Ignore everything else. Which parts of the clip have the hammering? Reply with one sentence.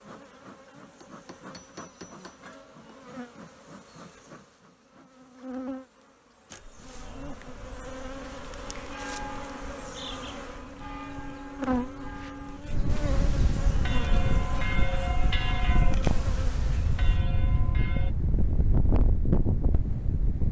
The hammering can be heard from 1.0 to 3.0 s.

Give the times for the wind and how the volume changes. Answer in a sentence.
The wind can be heard from 6.5 to 20.4 s, getting louder.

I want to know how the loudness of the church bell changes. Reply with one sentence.
The loudness of the church bell goes up, then down.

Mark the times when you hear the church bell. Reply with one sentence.
You can hear the church bell from 8.7 to 18.1 s.